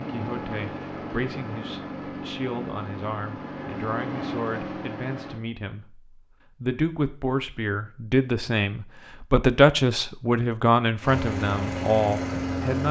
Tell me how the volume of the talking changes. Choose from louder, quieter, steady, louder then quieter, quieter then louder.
louder.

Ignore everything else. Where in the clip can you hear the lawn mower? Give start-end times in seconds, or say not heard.
0.0-5.4, 11.0-12.8.